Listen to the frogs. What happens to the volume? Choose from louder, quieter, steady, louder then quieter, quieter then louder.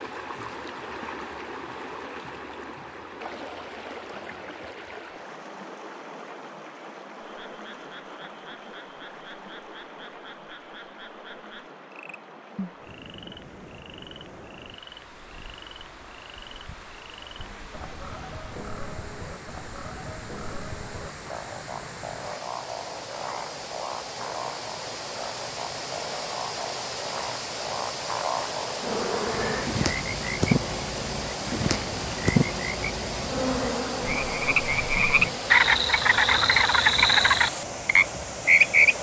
louder.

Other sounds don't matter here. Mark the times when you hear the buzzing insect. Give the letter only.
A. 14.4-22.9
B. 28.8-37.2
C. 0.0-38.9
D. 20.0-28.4
B.